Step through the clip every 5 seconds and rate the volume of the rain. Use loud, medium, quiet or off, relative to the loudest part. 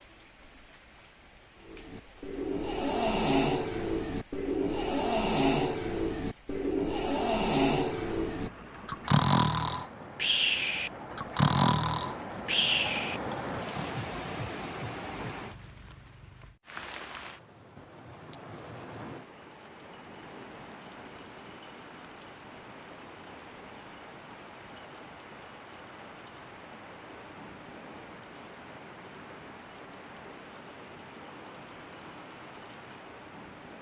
quiet, medium, loud, medium, medium, medium, medium.